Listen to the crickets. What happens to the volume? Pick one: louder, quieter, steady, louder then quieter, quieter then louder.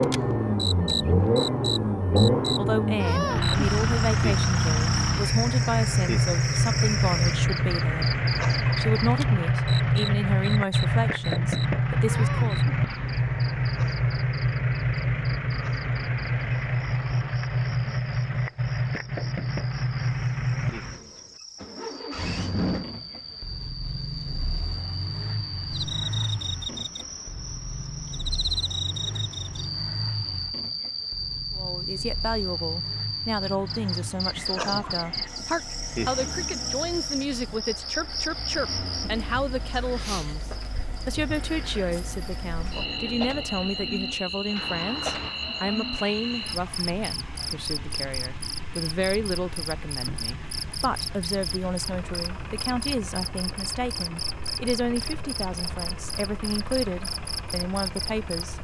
quieter then louder.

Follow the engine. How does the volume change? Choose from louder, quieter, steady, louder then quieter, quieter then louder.
quieter.